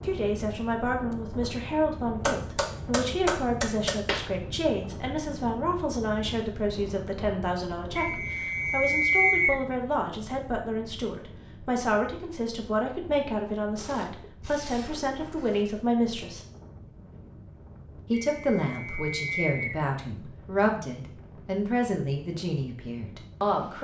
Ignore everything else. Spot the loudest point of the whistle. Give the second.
9 s.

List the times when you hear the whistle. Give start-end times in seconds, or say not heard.
8.0-9.6, 18.1-19.8.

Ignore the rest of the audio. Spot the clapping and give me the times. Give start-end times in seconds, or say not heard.
2.2-4.3.